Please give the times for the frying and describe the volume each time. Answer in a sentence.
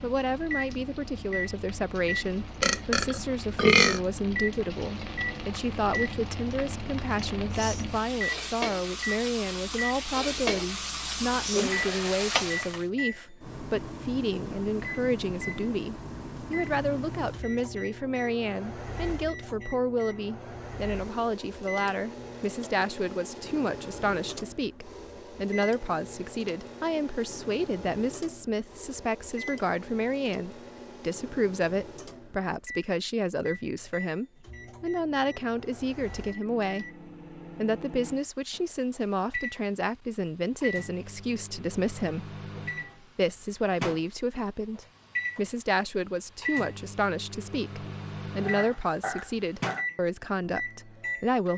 The frying can be heard from 0.0 to 12.8 s, getting louder.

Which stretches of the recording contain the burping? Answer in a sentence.
The burping can be heard from 2.6 to 4.0 s and from 48.4 to 49.9 s.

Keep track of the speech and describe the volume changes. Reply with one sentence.
The volume of the speech stays about the same.